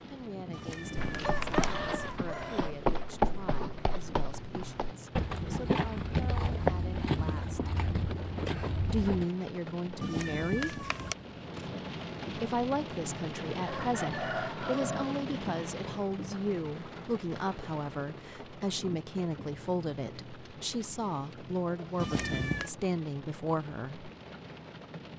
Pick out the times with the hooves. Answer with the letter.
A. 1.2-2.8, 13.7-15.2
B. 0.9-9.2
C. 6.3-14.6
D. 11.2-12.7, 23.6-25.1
B.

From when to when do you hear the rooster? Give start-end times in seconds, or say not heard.
1.2-2.8, 13.7-15.2.